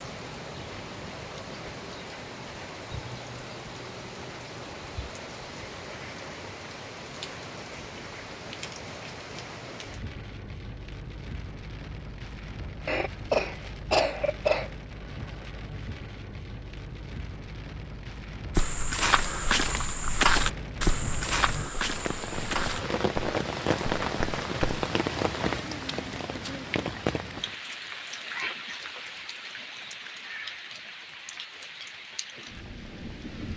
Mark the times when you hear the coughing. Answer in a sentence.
You can hear the coughing from 12.8 to 14.7 s.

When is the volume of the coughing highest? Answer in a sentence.
The loudest moment of the coughing is at 14 seconds.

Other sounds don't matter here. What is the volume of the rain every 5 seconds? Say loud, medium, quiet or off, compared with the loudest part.
medium, medium, medium, medium, loud, loud, medium.